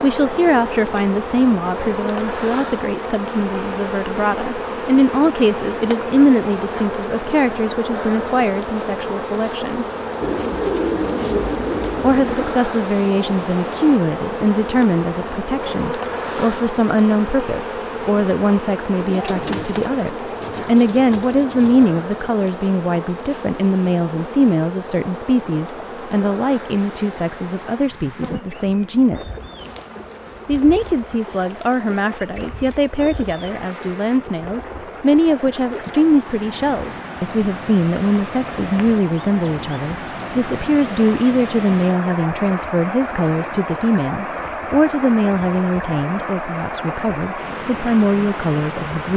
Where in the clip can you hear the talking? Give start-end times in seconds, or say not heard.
0.0-9.8, 12.0-29.3, 30.4-49.1.